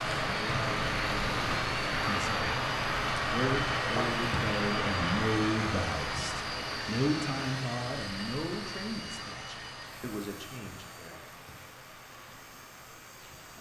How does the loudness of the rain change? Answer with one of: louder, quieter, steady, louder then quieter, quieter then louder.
quieter.